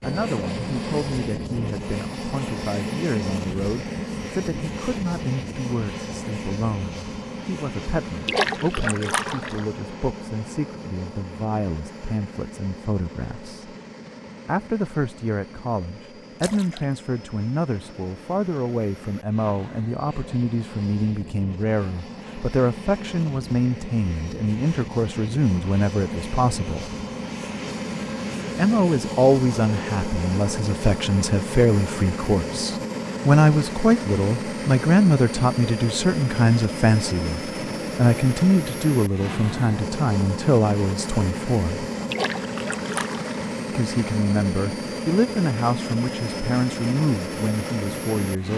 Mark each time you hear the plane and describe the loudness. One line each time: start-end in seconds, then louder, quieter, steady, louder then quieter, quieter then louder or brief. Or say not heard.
0.0-48.5 quieter then louder.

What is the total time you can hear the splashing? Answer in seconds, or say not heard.
3 s.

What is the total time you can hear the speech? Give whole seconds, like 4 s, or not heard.
44 s.